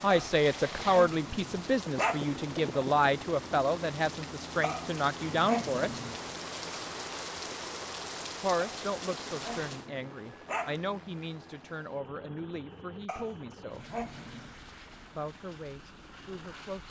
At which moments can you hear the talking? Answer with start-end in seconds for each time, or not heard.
0.0-6.0, 8.4-13.8, 15.2-16.8.